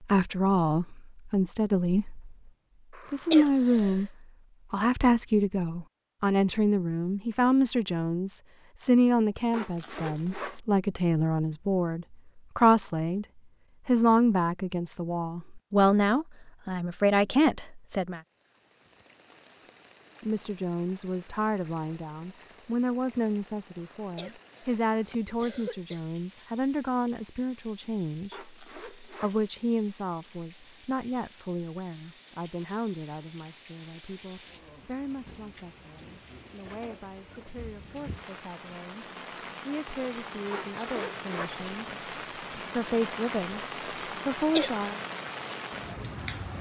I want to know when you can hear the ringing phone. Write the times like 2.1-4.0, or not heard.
not heard.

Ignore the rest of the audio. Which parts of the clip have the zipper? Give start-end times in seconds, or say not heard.
9.5-10.6, 28.3-29.4, 40.5-41.5.